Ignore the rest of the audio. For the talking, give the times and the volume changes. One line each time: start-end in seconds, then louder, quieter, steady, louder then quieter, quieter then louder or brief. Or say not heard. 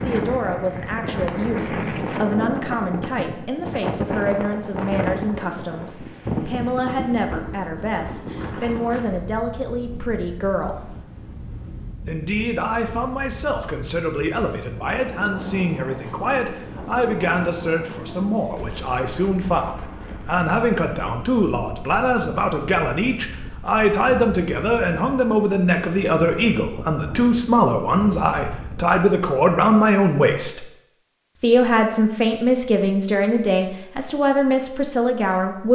0.0-10.8 steady
12.1-30.6 louder
31.4-35.6 steady.